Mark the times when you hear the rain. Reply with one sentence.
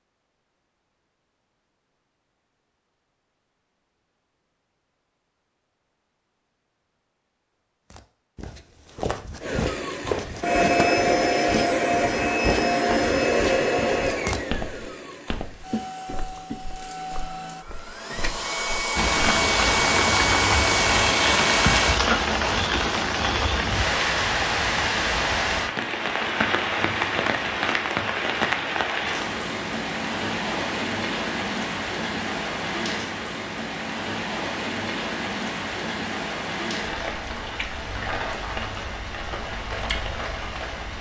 The rain can be heard from 18.9 to 40.9 s.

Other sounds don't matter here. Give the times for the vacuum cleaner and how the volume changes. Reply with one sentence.
The vacuum cleaner can be heard from 9.4 to 22.0 s, getting quieter then louder.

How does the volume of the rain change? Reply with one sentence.
The volume of the rain goes down.